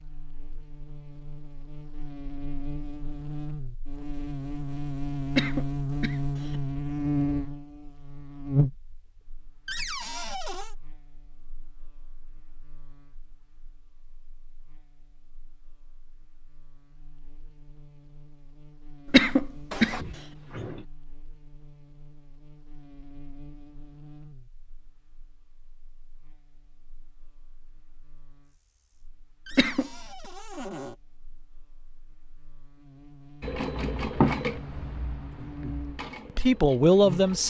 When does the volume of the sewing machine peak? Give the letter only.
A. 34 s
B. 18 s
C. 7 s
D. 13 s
A.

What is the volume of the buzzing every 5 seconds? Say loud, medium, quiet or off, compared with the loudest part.
medium, loud, quiet, quiet, quiet, quiet, quiet, medium.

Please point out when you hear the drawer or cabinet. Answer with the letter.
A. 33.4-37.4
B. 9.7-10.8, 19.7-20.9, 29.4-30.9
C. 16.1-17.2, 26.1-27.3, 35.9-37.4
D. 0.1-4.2
B.